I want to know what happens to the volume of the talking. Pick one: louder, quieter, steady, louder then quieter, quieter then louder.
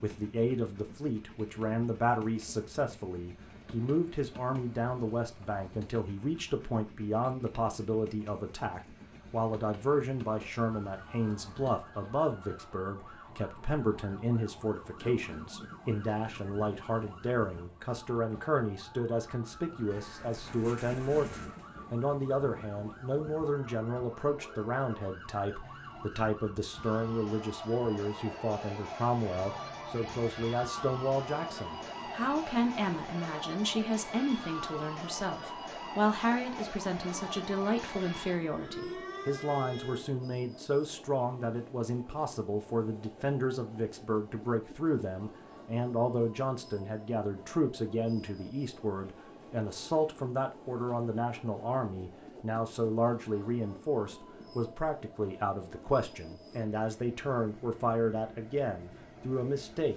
steady.